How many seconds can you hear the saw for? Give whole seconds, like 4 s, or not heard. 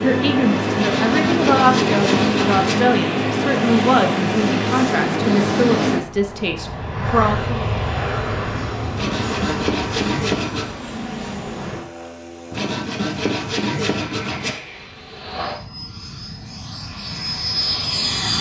6 s.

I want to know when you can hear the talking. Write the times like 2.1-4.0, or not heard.
0.0-7.6.